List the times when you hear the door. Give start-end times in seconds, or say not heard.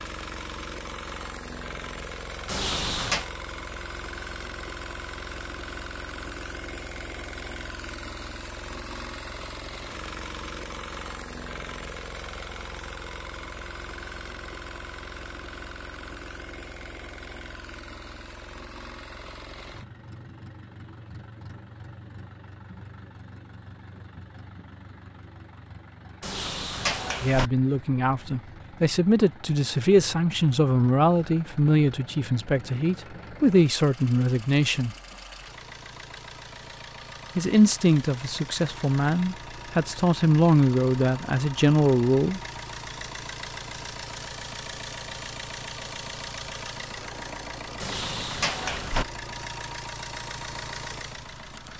2.5-3.3, 26.2-27.5, 47.8-49.0.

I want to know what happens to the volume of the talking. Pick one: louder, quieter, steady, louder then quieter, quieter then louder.
steady.